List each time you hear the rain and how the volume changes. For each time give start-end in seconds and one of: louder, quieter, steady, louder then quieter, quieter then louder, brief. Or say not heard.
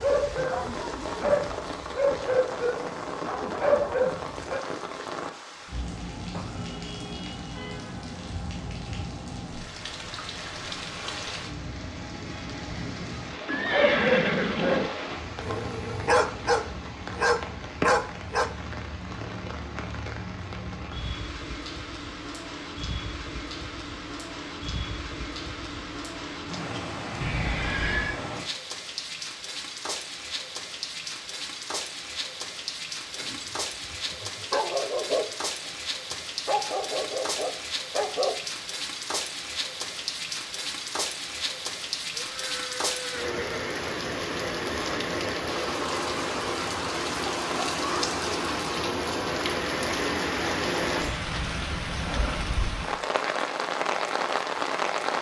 0.0-55.1 louder.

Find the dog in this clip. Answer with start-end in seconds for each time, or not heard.
0.0-4.7, 13.6-18.5, 33.1-35.7, 36.5-38.6.